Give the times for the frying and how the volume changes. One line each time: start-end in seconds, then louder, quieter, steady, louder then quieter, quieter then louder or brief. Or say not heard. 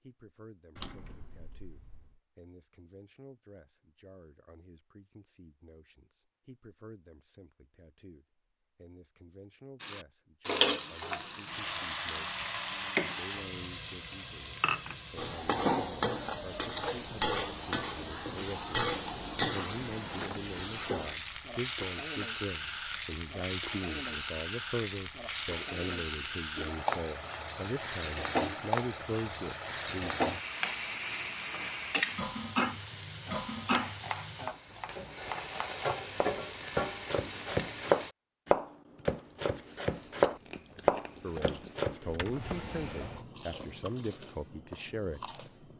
9.8-38.1 steady.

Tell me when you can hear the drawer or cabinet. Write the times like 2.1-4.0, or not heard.
0.8-2.1, 18.8-20.6, 42.0-43.2.